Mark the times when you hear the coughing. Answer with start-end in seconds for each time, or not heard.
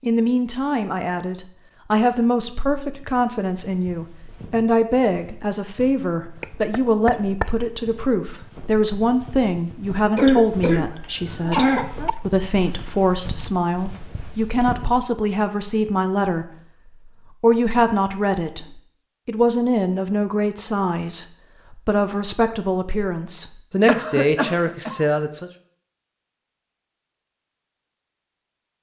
6.4-7.5, 10.2-12.1, 23.9-25.1.